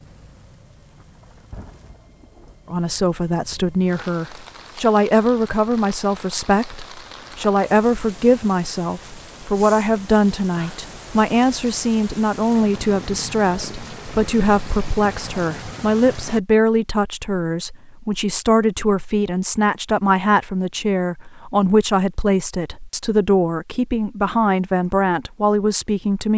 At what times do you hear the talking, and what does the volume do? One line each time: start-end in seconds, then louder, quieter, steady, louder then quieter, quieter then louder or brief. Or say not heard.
2.7-26.3 steady.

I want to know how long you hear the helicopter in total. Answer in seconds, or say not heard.
not heard.